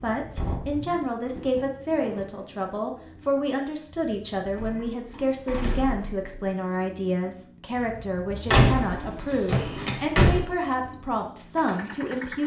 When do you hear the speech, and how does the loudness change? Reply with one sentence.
The speech can be heard from 0.0 to 12.4 s, at a steady volume.